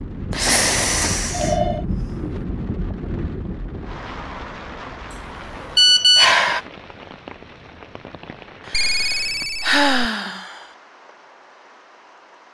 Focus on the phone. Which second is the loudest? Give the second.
6 s.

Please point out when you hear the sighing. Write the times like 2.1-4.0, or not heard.
0.3-2.4, 5.1-6.7, 8.7-10.7.